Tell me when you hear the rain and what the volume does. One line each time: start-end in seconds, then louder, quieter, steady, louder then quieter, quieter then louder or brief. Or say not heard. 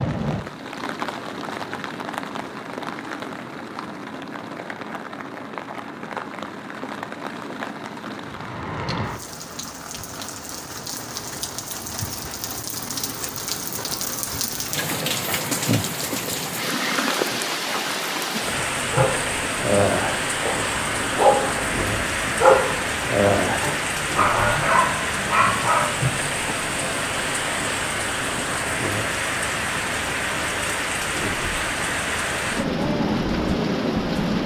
0.0-34.4 louder.